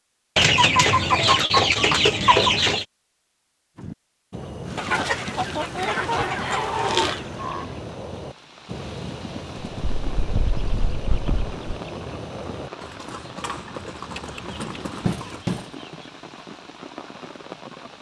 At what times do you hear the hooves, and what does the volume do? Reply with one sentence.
You can hear the hooves from 3.8 to 15.4 s, at a steady volume.